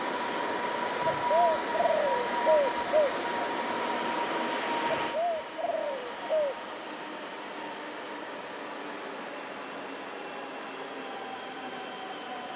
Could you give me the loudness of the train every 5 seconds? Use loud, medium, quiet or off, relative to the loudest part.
loud, medium, medium.